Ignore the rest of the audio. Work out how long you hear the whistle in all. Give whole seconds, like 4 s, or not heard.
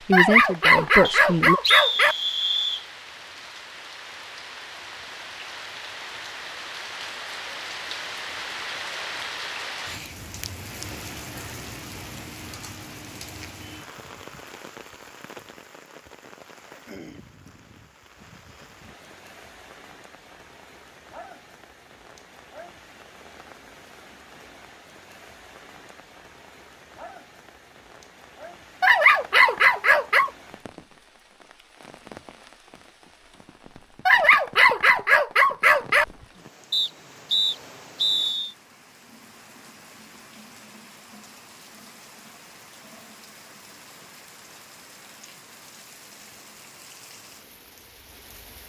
4 s.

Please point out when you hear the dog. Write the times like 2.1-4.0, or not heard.
0.1-2.1, 28.8-30.3, 34.0-36.0.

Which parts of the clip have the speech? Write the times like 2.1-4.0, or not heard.
0.1-1.6.